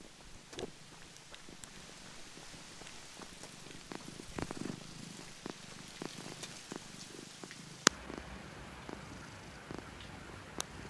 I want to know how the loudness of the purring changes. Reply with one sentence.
The volume of the purring goes up, then down.